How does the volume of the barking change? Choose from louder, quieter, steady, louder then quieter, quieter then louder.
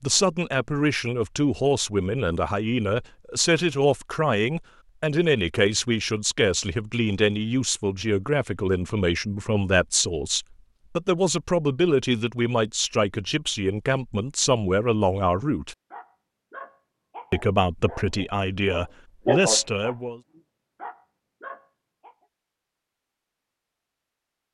louder then quieter.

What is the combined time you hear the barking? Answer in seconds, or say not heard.
6 s.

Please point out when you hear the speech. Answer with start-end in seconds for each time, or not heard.
0.0-15.8, 17.3-20.2.